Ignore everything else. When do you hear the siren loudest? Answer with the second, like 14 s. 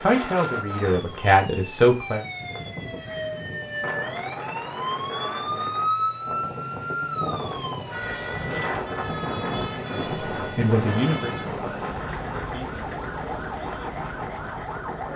6 s.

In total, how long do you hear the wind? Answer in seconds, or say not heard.
15 s.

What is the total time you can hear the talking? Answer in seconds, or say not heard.
5 s.